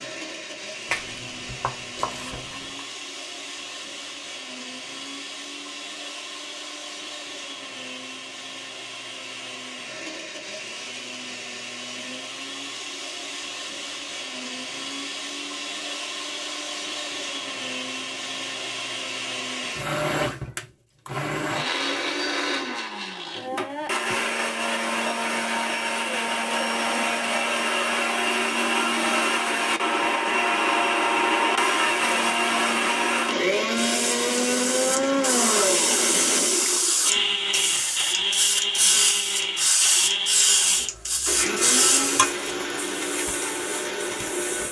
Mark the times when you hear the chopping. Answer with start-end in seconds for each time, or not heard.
0.8-2.8.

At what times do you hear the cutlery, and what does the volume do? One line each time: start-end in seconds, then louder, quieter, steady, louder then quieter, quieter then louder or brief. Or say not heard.
not heard.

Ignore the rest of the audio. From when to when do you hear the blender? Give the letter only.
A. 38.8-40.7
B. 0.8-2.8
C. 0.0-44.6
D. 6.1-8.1
C.